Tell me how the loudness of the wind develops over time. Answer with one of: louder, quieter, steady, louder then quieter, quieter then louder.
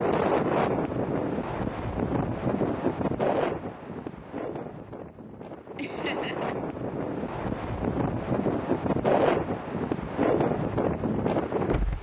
quieter then louder.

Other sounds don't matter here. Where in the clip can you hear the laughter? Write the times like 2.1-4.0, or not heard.
5.8-6.5.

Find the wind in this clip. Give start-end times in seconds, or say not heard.
0.0-11.9.